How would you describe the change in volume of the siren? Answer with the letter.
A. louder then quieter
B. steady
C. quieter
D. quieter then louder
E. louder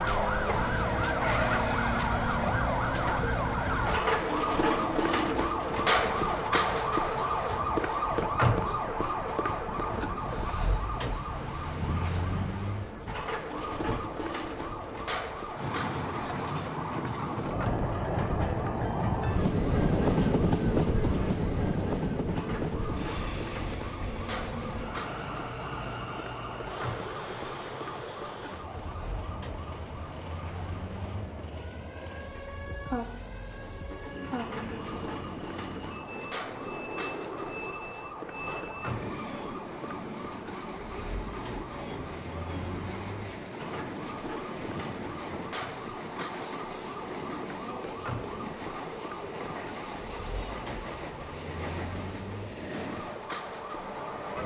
C.